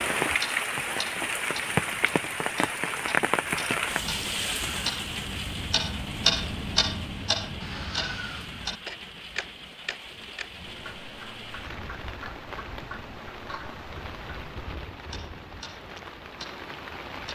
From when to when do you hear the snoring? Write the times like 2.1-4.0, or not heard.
not heard.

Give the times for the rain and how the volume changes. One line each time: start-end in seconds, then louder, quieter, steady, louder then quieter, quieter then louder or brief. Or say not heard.
0.0-17.3 quieter.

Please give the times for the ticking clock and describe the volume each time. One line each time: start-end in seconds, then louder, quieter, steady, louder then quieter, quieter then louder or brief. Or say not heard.
0.2-17.3 louder then quieter.